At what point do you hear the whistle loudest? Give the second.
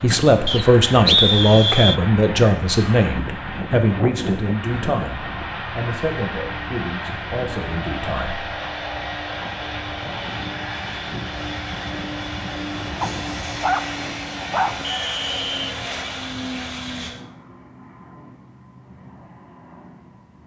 1 s.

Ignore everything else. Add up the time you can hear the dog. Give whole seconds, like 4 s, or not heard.
2 s.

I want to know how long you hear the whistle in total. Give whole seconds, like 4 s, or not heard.
2 s.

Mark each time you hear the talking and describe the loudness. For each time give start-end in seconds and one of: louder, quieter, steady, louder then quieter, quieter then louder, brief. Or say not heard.
0.0-8.4 quieter.